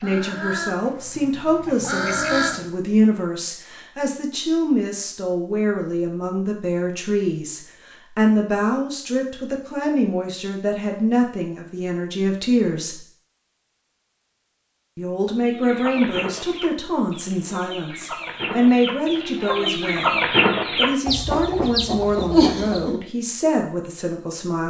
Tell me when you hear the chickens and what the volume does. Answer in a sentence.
The chickens can be heard briefly from 0.0 to 2.6 s; and from 15.4 to 23.0 s, getting louder.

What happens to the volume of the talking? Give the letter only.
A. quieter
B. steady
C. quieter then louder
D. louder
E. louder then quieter
B.